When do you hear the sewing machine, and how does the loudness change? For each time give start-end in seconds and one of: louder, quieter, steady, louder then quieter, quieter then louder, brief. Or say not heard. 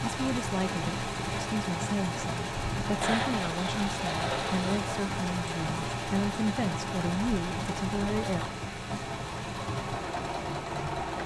0.0-11.2 steady.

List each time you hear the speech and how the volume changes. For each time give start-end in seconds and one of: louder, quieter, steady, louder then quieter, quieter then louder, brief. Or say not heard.
0.0-8.4 steady.